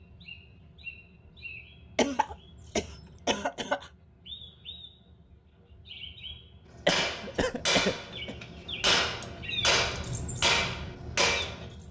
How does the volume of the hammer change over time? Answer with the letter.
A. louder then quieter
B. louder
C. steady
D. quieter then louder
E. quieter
D.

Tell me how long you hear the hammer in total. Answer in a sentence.
You can hear the hammer for 5 seconds altogether.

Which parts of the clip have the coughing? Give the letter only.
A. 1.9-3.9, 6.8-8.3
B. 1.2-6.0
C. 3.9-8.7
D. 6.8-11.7
A.